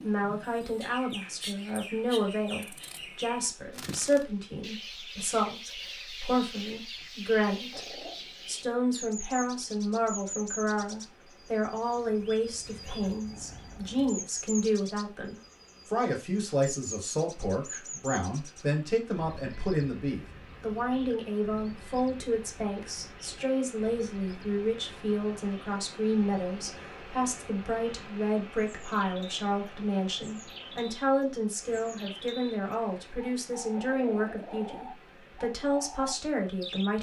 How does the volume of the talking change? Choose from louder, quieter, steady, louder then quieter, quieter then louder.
steady.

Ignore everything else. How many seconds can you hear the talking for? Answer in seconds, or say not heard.
37 s.